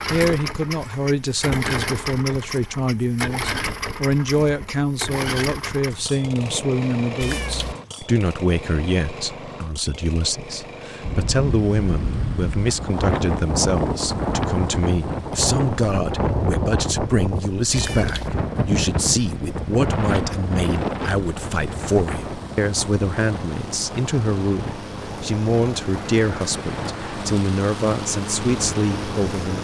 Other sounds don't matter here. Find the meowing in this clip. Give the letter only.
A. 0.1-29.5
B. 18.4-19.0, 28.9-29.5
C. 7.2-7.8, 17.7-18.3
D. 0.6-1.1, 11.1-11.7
C.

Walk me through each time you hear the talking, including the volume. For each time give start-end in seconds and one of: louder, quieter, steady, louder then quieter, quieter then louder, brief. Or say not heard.
0.1-29.5 steady.